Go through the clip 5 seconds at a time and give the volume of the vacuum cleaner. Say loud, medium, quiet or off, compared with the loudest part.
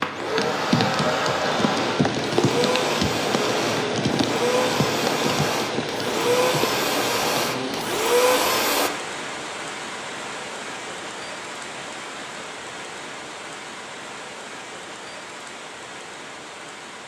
loud, loud, off, off.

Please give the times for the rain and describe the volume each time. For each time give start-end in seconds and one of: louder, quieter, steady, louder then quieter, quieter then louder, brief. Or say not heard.
0.0-17.0 quieter.